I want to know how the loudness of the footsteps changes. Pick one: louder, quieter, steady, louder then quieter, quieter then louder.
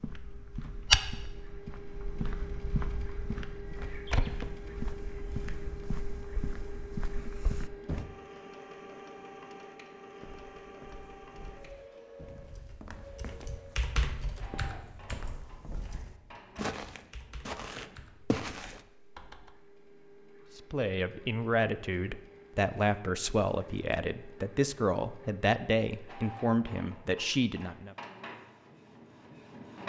quieter then louder.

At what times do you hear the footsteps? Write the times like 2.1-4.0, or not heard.
0.0-8.1, 10.2-18.8.